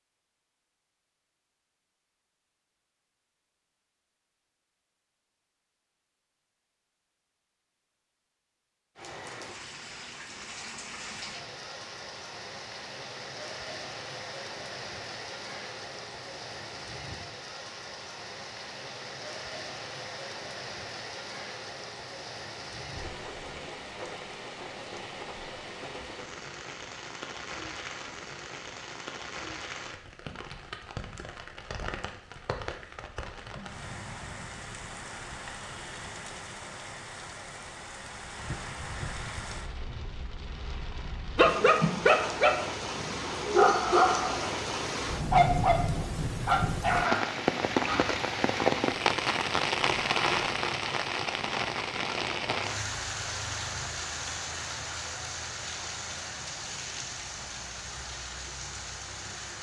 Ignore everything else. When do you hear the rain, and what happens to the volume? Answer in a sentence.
You can hear the rain from 8.9 to 59.5 s, getting louder.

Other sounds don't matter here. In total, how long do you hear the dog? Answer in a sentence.
You can hear the dog for 6 seconds altogether.